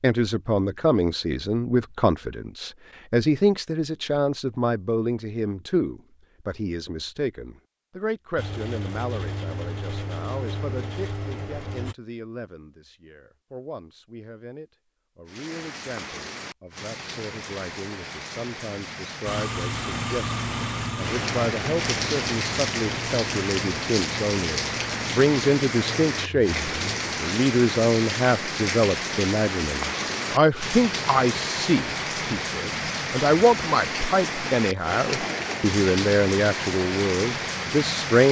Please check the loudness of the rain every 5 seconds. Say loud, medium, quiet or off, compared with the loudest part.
off, off, off, medium, loud, loud, loud, loud.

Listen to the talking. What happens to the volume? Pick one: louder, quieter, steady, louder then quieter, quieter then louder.
quieter then louder.